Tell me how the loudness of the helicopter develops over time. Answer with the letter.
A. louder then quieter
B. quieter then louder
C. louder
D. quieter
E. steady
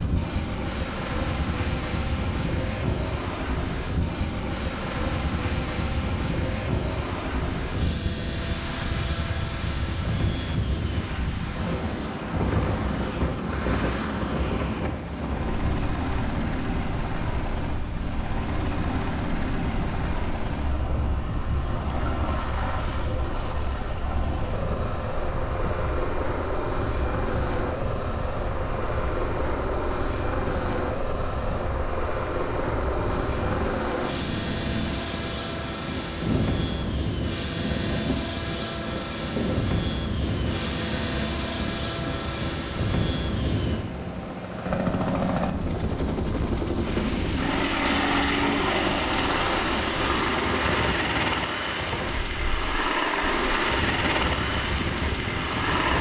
C.